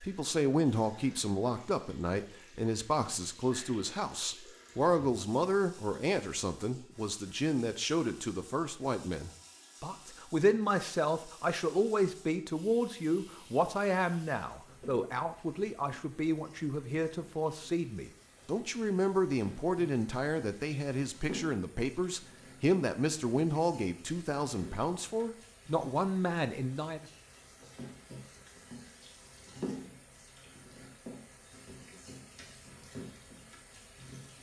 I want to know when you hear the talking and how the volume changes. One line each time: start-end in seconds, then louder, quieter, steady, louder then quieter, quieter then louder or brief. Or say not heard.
0.0-27.1 steady.